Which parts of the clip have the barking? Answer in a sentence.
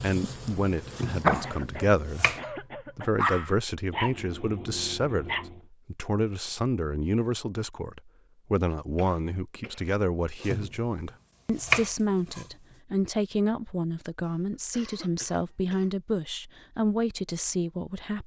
The barking can be heard from 0.0 to 5.6 s.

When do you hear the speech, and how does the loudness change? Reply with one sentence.
You can hear the speech from 0.0 to 18.2 s, at a steady volume.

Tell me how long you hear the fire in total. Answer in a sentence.
The fire can't be heard in this clip.